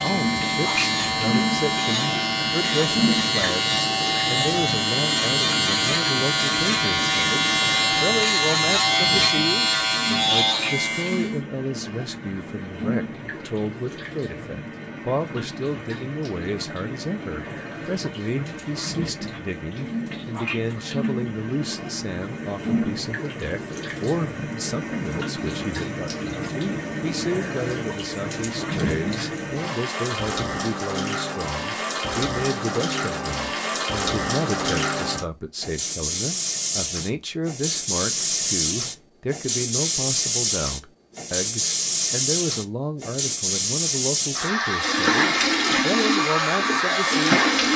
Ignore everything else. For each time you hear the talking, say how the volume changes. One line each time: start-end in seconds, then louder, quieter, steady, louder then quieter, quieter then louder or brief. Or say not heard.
0.0-47.5 steady.